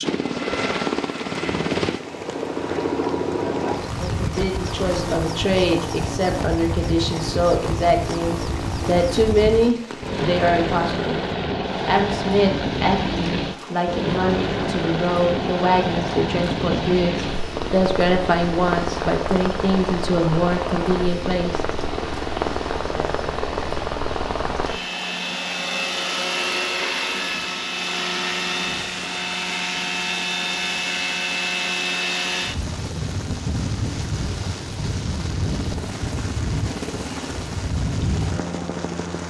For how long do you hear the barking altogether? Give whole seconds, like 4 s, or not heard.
not heard.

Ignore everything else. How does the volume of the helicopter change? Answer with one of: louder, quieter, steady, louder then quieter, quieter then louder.
steady.